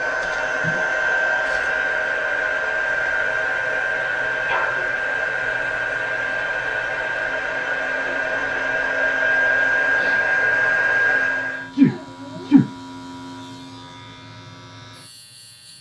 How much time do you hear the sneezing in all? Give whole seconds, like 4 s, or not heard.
2 s.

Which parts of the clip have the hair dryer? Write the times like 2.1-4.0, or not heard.
0.0-11.7.